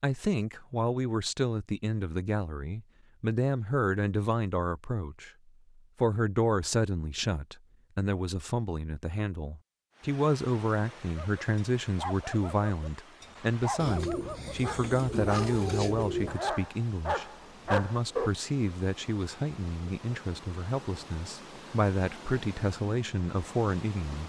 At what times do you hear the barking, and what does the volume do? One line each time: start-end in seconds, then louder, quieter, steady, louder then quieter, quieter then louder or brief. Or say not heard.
11.2-18.3 louder.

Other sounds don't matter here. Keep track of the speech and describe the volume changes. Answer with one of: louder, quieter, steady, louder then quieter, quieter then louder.
steady.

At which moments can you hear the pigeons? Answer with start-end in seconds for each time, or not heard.
13.8-16.4.